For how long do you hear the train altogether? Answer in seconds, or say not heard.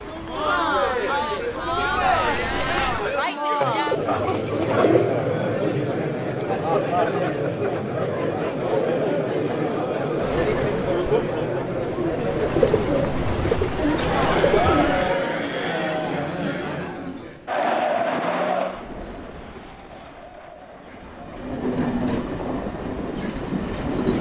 14 s.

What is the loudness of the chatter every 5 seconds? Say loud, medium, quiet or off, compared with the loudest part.
loud, loud, loud, loud, quiet.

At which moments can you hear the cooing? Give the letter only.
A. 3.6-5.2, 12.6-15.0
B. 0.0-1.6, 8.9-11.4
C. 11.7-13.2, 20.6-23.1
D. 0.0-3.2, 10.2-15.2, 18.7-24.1
A.